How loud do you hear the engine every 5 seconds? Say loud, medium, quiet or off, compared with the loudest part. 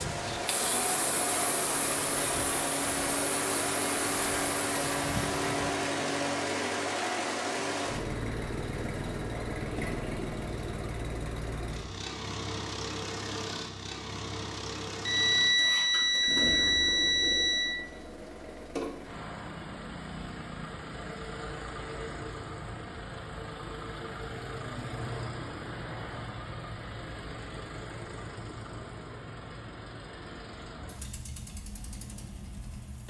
loud, loud, medium, medium, medium, medium, quiet.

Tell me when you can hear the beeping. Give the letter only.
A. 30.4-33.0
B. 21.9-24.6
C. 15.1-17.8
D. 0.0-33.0
C.